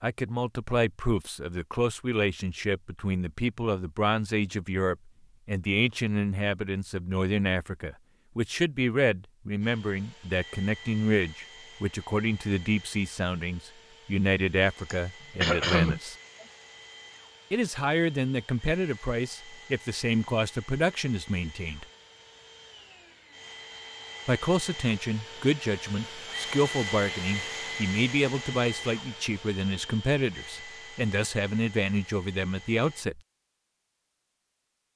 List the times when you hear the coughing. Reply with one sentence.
You can hear the coughing from 14.8 to 16.4 s.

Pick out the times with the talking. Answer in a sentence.
You can hear the talking from 0.0 to 16.1 s, from 17.5 to 21.9 s and from 24.2 to 33.2 s.